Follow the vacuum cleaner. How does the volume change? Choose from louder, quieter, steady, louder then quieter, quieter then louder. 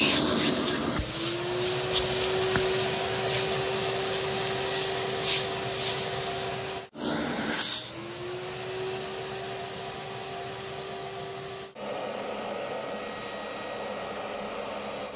quieter.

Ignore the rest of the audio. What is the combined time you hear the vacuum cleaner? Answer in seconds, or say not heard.
15 s.